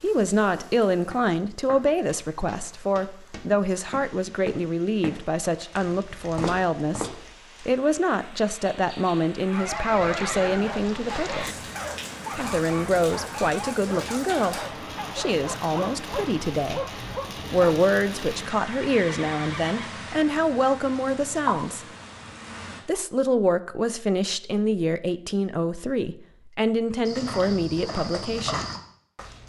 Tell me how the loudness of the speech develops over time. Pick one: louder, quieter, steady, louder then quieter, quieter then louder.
steady.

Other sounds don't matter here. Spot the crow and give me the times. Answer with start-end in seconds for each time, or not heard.
not heard.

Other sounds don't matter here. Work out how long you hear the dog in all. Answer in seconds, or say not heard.
8 s.